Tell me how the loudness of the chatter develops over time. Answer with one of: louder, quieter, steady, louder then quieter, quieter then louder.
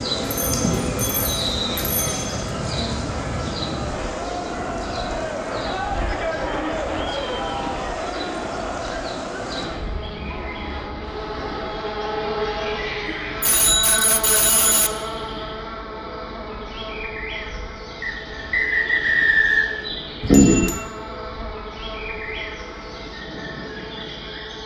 louder then quieter.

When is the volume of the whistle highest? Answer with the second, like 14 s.
19 s.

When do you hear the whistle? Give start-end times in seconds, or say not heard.
1.4-1.9, 18.0-19.8.